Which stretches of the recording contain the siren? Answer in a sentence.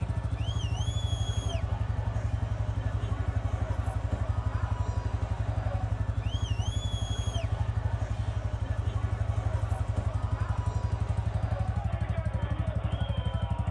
You can't hear the siren here.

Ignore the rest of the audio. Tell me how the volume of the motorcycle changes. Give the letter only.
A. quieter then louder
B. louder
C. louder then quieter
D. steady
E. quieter
D.